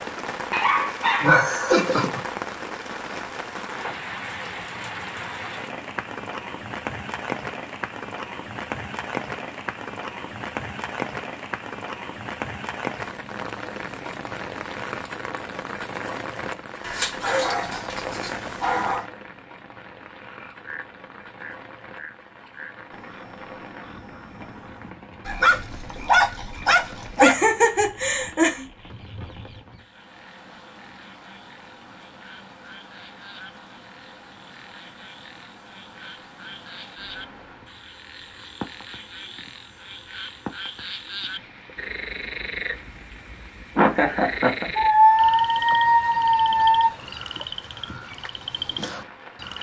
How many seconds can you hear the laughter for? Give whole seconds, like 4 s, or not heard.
4 s.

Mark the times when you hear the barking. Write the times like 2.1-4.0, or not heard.
0.5-2.1, 16.8-19.1, 25.2-27.4, 44.8-46.9.